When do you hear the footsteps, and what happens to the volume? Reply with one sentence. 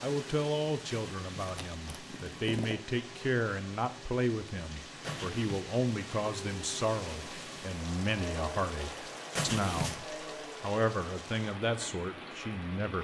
The footsteps can't be heard in this clip.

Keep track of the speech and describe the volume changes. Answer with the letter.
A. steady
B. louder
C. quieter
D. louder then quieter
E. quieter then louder
A.